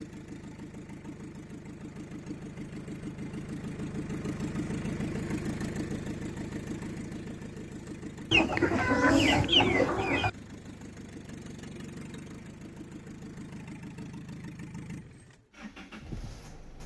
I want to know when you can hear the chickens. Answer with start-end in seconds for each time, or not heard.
8.3-10.3.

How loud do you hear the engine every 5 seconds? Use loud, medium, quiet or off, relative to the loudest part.
loud, loud, medium, medium.